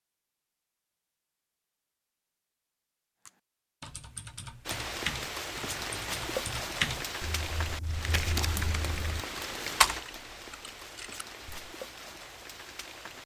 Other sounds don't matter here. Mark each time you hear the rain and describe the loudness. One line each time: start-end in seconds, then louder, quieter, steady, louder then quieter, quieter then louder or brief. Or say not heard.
4.7-13.2 quieter.